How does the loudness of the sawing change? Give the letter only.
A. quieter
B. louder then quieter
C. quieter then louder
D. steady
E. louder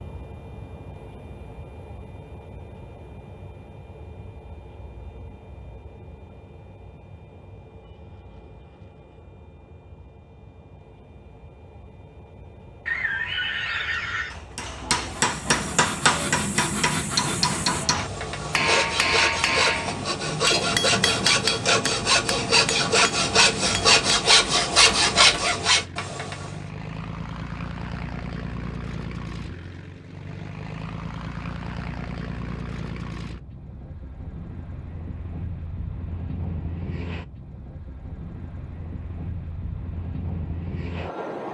E.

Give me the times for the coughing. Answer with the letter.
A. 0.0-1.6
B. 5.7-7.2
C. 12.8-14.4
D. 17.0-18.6
C.